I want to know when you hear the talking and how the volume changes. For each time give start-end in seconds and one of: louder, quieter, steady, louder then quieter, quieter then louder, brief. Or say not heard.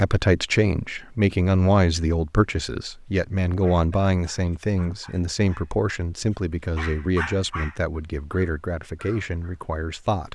0.0-10.3 quieter.